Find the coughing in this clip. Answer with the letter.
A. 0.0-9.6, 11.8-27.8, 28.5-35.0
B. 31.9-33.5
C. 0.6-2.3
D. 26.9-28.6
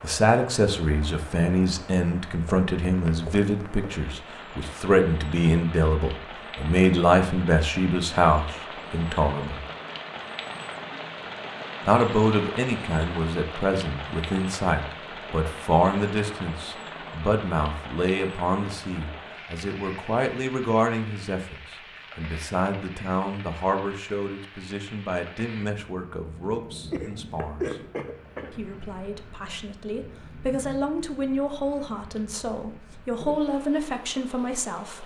D.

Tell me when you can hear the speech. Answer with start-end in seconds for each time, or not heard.
0.0-9.6, 11.8-27.8, 28.5-35.0.